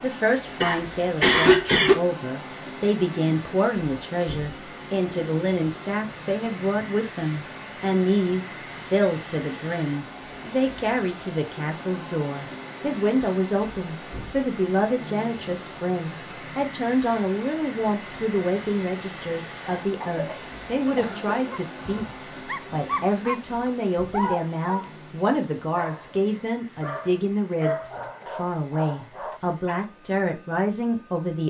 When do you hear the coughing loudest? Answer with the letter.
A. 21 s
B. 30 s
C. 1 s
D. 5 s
C.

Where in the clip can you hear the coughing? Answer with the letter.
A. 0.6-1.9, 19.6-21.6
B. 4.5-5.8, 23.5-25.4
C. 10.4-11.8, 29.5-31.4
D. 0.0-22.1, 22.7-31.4
A.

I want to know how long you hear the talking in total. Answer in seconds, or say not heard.
31 s.